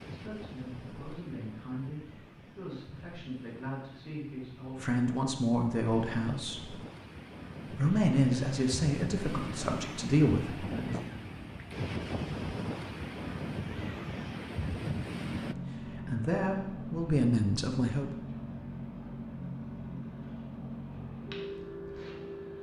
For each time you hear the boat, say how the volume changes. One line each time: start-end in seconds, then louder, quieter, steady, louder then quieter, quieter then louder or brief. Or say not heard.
15.2-22.5 steady.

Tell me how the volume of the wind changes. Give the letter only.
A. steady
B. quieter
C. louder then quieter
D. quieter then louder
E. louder
E.